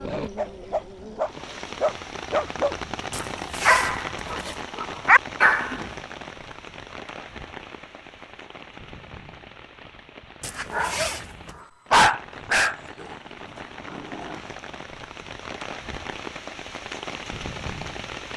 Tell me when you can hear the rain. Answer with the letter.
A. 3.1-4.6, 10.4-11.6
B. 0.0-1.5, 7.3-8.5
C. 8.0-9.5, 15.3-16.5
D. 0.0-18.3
D.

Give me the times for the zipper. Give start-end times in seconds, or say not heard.
3.1-4.6, 10.4-11.6.